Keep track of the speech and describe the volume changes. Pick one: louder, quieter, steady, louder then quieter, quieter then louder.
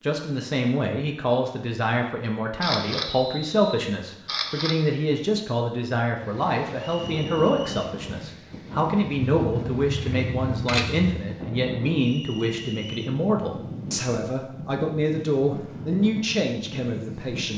steady.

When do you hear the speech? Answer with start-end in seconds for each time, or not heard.
0.0-17.5.